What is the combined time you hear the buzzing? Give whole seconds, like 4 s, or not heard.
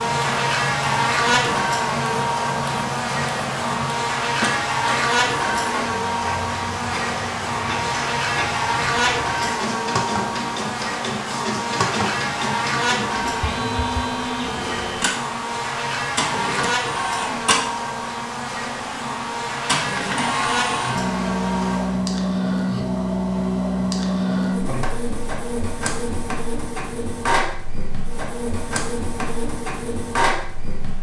22 s.